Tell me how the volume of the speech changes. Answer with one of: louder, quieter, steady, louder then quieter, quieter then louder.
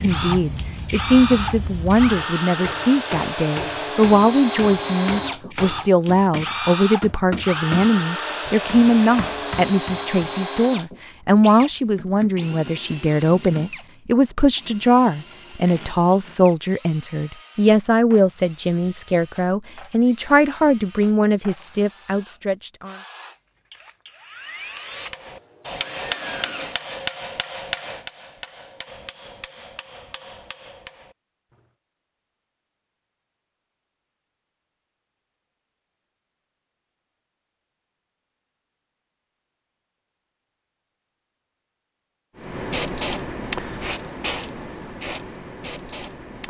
steady.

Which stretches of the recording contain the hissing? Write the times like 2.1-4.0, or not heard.
0.0-2.2, 42.4-46.4.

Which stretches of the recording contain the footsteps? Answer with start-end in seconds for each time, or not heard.
not heard.